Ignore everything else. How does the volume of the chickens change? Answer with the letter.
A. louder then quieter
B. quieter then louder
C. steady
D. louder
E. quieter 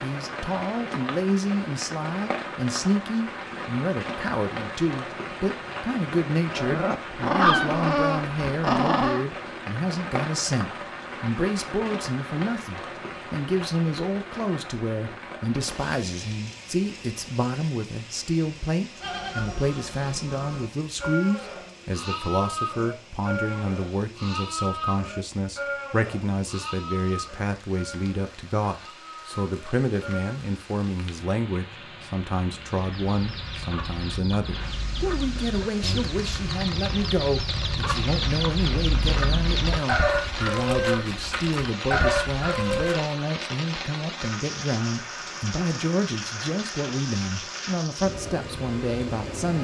D.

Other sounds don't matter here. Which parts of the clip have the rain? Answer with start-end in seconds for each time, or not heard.
0.0-49.5.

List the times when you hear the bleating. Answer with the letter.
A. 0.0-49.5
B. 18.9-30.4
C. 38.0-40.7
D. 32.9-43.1
B.